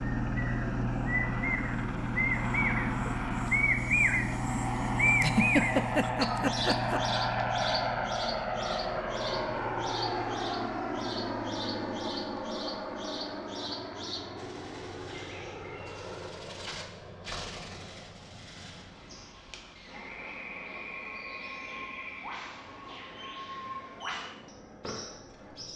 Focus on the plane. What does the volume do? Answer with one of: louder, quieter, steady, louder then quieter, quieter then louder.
quieter.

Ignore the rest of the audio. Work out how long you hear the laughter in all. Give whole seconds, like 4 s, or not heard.
2 s.